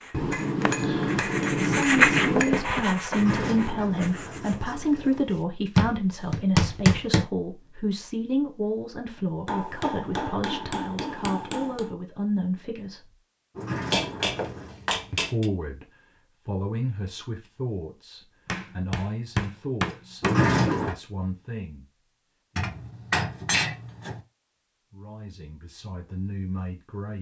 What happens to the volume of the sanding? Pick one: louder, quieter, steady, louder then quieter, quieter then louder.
louder then quieter.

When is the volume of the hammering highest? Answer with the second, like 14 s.
7 s.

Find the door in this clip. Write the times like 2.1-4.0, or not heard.
3.1-5.3, 13.6-14.8, 20.2-20.9.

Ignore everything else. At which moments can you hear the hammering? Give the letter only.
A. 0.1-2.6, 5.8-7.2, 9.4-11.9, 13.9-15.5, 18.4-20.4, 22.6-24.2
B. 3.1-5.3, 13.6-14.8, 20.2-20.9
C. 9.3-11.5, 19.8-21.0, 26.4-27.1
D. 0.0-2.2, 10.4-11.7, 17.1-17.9
A.